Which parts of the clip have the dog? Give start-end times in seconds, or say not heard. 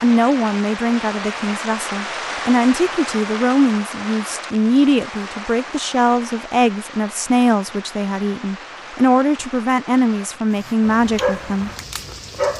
10.6-12.5.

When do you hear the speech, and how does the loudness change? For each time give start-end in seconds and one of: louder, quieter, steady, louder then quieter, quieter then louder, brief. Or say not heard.
0.0-11.7 steady.